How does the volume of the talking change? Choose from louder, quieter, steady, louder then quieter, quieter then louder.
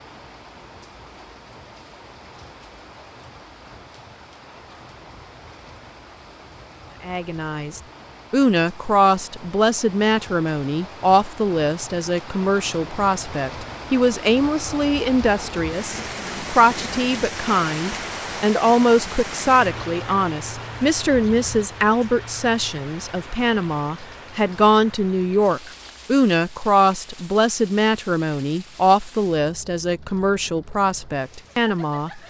steady.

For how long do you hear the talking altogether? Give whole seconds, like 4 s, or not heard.
25 s.